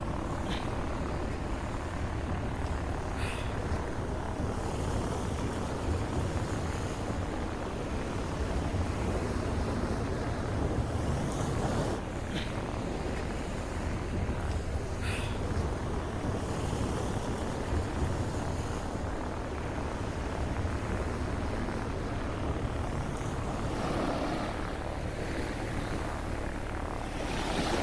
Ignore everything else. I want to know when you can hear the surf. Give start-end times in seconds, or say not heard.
0.0-27.7.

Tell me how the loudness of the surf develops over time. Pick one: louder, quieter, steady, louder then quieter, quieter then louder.
steady.